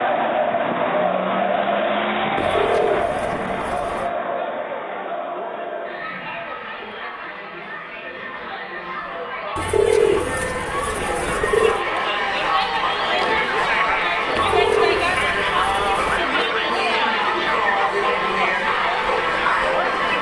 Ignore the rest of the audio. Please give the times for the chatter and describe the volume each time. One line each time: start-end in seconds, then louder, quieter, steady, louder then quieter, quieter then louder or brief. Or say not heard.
0.0-20.1 quieter then louder.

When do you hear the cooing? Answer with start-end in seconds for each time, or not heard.
2.4-4.1, 9.6-11.8, 14.3-16.2.